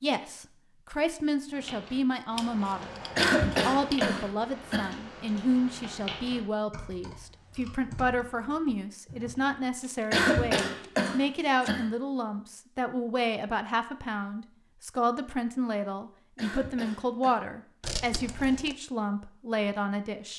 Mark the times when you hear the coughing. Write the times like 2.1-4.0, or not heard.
3.1-5.0, 10.1-11.9, 16.4-17.4.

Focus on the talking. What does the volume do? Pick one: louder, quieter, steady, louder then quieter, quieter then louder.
steady.